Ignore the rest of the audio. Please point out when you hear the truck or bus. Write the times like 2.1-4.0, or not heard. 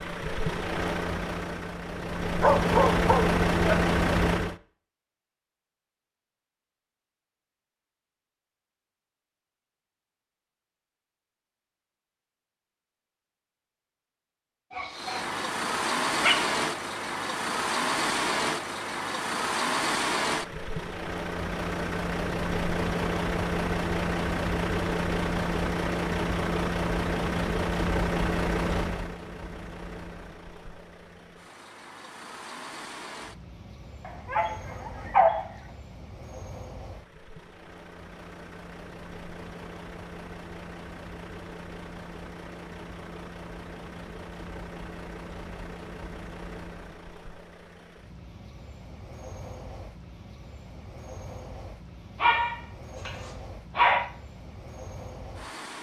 0.0-4.5, 14.9-55.7.